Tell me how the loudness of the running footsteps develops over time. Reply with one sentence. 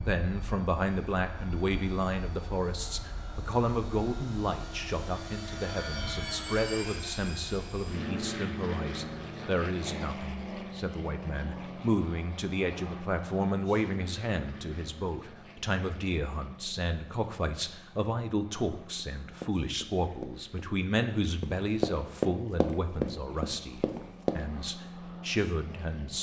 The loudness of the running footsteps goes up, then down.